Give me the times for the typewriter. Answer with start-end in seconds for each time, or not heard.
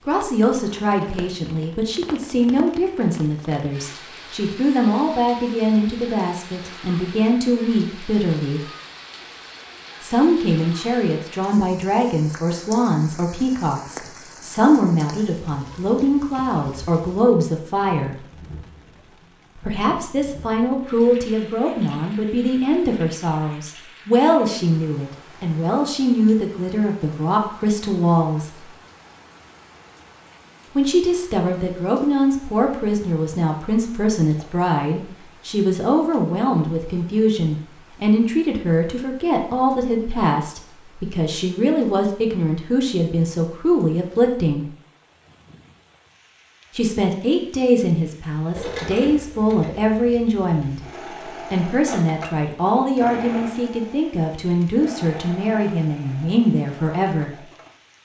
not heard.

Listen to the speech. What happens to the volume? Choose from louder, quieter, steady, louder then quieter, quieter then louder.
steady.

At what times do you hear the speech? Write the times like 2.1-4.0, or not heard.
0.1-8.7, 10.0-18.2, 19.6-28.6, 30.7-44.7, 46.8-57.4.